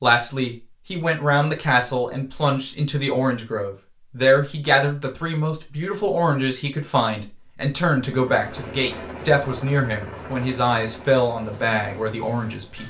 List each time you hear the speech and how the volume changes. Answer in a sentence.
The speech can be heard from 0.0 to 12.8 s, at a steady volume.